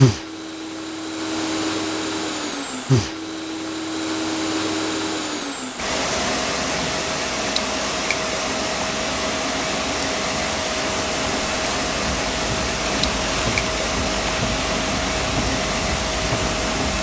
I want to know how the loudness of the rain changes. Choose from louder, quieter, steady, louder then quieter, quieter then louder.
louder.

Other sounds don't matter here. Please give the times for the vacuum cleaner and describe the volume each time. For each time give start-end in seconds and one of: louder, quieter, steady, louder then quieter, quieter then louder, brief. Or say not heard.
0.0-16.9 steady.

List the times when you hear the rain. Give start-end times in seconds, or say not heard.
6.0-16.9.